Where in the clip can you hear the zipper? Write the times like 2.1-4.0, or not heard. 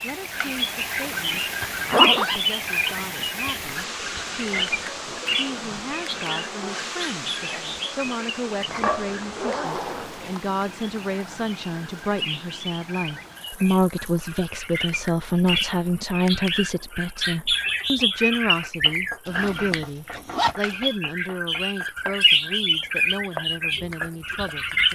1.6-2.4, 8.7-10.4, 19.2-20.6.